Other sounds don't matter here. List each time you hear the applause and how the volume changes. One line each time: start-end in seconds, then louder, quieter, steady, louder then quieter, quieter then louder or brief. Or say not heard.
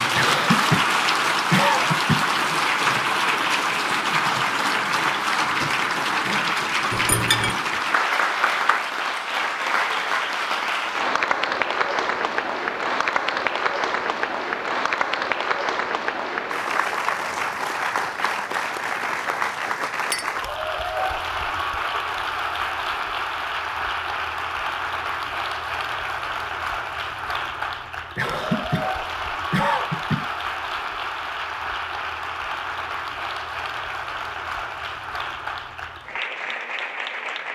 0.0-37.5 quieter.